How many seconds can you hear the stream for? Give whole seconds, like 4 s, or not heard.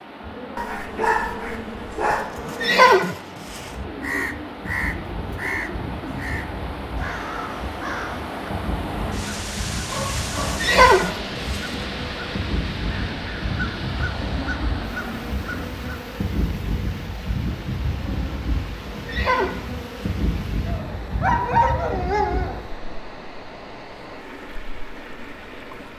26 s.